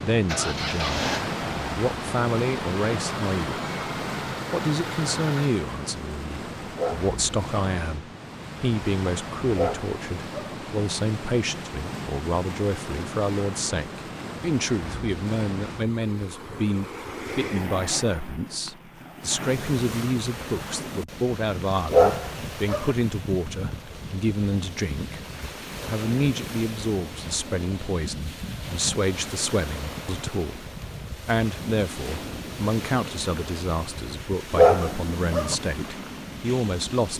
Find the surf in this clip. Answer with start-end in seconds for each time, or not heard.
0.0-37.1.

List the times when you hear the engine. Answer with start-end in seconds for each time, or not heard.
0.2-5.5.